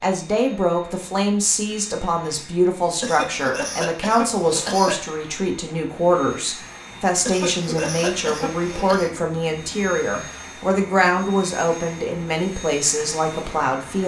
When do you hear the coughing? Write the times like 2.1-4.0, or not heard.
3.0-5.1, 7.2-9.1.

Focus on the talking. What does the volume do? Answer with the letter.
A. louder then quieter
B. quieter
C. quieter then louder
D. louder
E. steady
E.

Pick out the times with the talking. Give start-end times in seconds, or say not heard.
0.0-14.0.